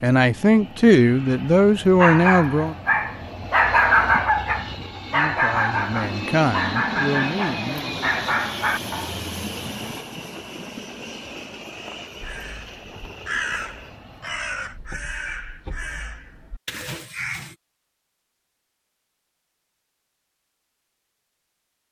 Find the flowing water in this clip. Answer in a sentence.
The flowing water can't be heard in this clip.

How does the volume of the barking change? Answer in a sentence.
The loudness of the barking goes up, then down.